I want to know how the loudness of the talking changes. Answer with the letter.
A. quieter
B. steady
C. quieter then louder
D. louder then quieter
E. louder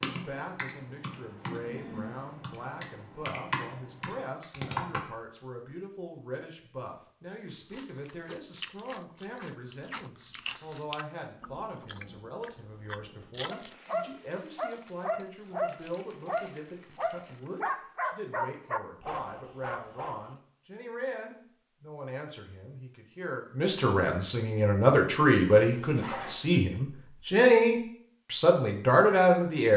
E.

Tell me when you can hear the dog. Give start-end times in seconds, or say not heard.
13.5-20.3.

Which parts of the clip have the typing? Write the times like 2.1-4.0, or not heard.
0.0-5.0.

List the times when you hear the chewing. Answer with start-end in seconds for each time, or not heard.
7.5-13.8.